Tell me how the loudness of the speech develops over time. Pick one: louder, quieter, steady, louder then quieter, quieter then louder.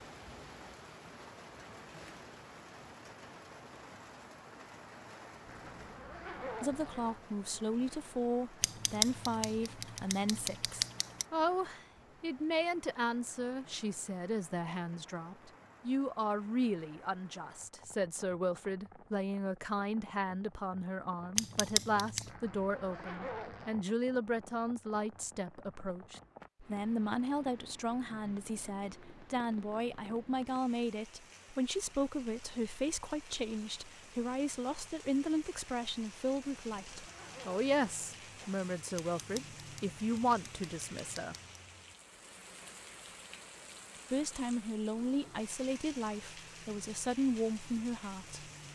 steady.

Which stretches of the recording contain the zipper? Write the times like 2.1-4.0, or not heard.
5.5-7.2, 22.2-23.8, 36.4-38.6.